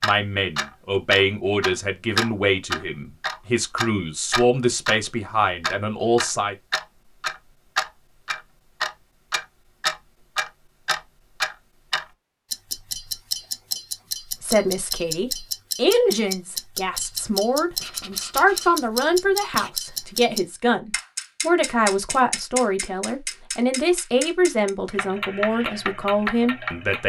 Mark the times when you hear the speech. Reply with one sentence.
The speech can be heard from 0.0 to 6.5 s and from 14.3 to 27.0 s.